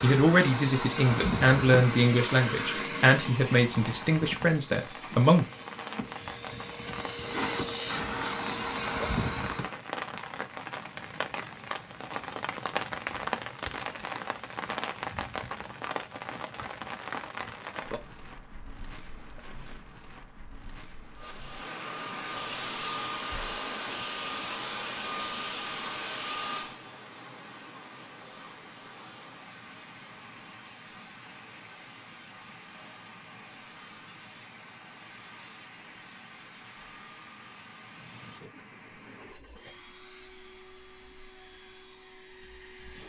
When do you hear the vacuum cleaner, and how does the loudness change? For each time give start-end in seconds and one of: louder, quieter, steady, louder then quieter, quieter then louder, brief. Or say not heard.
0.0-9.8 quieter then louder
21.1-43.0 quieter.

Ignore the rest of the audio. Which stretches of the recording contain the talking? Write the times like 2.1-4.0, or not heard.
0.0-5.5.